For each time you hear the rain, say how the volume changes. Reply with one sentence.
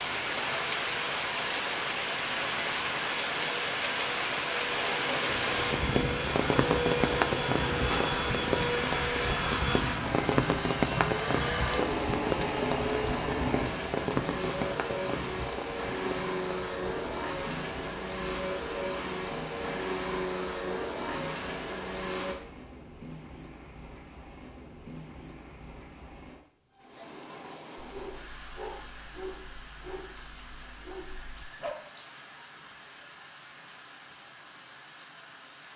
You can hear the rain from 0.0 to 35.7 s, getting quieter.